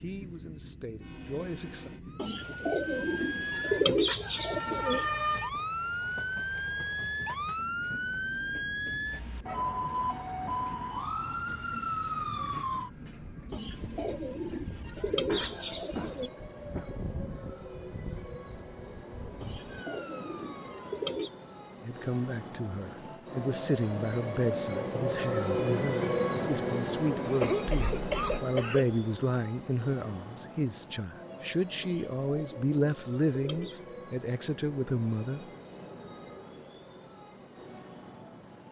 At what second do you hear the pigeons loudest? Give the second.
4 s.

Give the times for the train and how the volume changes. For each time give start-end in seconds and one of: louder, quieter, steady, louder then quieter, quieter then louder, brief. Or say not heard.
0.0-38.6 louder then quieter.